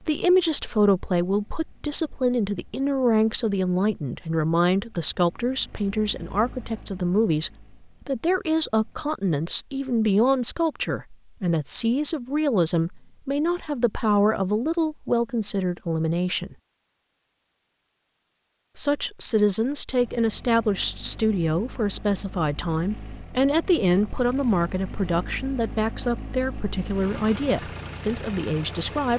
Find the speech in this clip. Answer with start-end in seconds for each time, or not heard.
0.1-16.6, 18.8-29.1.